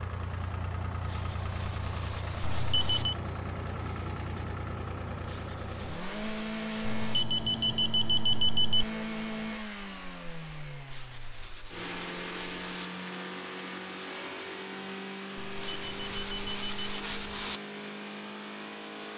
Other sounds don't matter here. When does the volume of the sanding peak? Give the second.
17 s.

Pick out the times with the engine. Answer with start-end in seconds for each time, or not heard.
0.0-19.1.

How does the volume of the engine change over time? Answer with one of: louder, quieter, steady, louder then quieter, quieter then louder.
steady.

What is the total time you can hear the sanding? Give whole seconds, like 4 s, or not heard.
8 s.